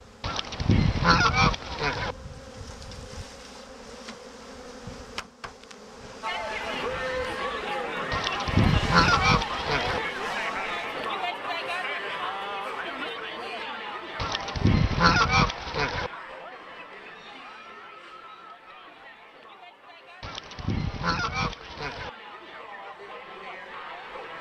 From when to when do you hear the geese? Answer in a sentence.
The geese can be heard from 0.2 to 2.1 s, from 8.1 to 10.0 s, from 14.2 to 16.1 s and from 20.2 to 22.1 s.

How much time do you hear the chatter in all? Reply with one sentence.
You can hear the chatter for 18 seconds altogether.